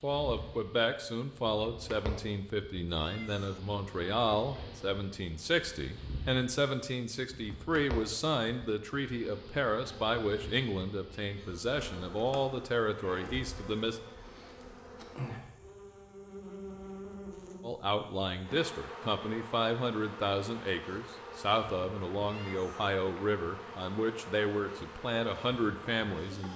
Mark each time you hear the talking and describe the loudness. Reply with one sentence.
The talking can be heard from 0.0 to 14.0 s, at a steady volume; and from 17.6 to 26.5 s, at a steady volume.